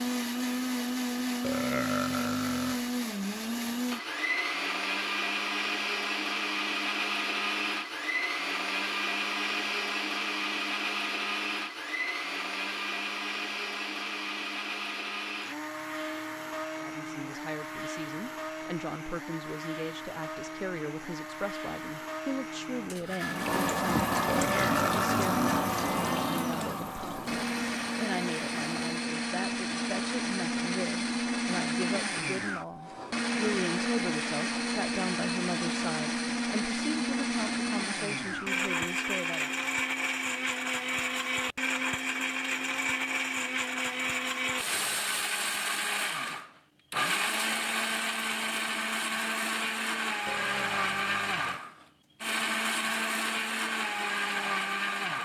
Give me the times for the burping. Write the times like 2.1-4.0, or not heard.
1.4-2.8, 24.2-25.6, 50.2-51.6.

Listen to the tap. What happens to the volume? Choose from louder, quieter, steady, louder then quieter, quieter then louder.
quieter.